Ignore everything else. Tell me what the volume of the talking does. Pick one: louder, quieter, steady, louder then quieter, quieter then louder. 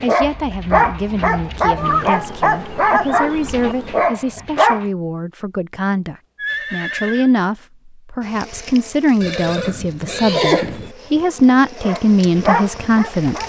louder.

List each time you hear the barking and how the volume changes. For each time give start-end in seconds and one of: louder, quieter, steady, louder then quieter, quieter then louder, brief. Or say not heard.
0.0-4.8 steady
11.8-13.4 brief.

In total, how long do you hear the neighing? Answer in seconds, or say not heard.
5 s.